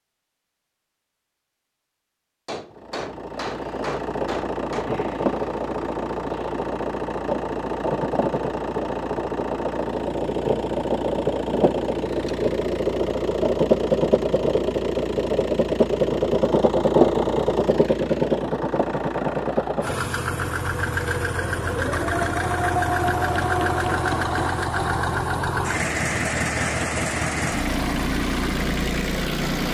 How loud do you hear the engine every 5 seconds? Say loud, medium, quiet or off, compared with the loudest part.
medium, medium, loud, loud, loud, loud.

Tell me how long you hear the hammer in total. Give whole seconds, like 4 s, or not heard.
4 s.